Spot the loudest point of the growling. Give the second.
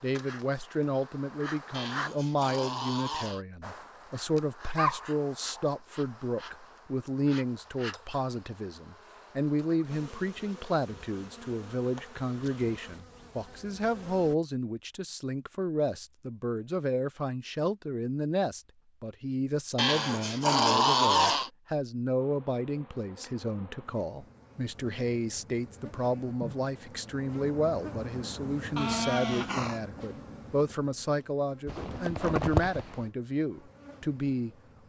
21 s.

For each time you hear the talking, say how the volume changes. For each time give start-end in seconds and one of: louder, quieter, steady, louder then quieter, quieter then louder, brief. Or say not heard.
0.0-34.5 steady.